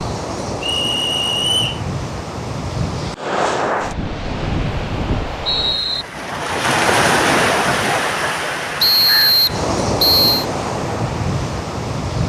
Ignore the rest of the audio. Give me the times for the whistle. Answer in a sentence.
The whistle can be heard from 0.6 to 1.8 s, from 4.4 to 6.0 s and from 8.8 to 10.4 s.